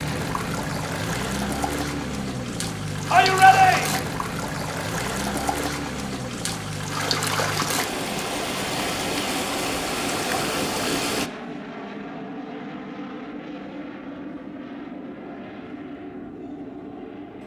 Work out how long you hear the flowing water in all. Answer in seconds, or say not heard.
11 s.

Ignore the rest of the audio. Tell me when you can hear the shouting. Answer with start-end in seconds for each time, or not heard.
3.1-4.0.